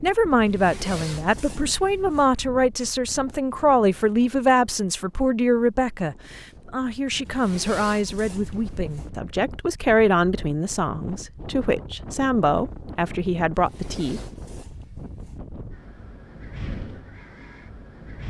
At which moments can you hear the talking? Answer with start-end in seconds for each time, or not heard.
0.0-14.2.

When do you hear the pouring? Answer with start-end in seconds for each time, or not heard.
not heard.